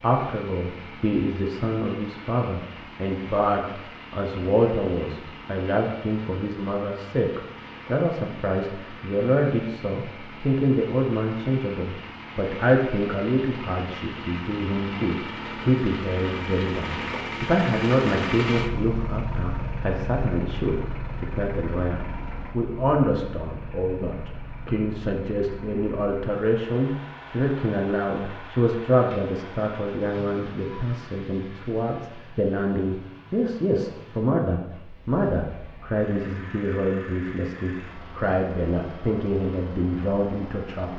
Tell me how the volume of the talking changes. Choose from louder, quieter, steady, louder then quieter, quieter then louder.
steady.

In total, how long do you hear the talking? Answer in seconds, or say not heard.
41 s.